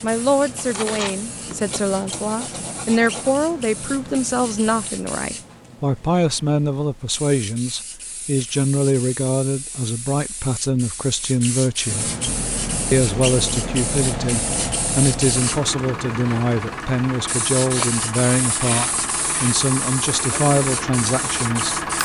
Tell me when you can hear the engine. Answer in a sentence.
The engine can be heard from 12.2 to 22.0 s.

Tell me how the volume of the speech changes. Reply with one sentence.
The loudness of the speech stays about the same.